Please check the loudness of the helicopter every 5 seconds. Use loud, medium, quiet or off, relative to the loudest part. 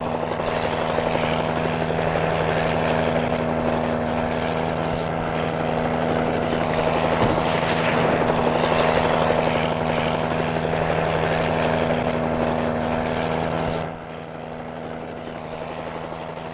loud, loud, loud, medium.